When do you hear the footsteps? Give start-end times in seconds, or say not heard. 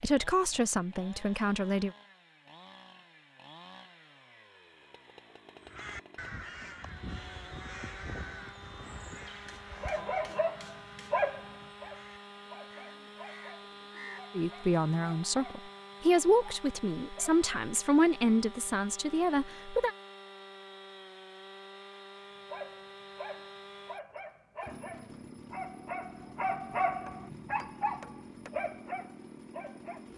not heard.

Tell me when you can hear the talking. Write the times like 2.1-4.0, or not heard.
0.0-1.9, 14.3-19.9.